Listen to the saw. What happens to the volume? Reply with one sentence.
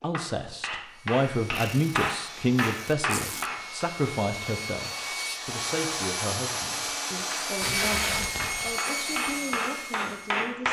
The loudness of the saw goes up.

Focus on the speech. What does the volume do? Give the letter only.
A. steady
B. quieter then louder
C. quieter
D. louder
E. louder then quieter
C.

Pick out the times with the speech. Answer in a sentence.
You can hear the speech from 0.0 to 10.6 s.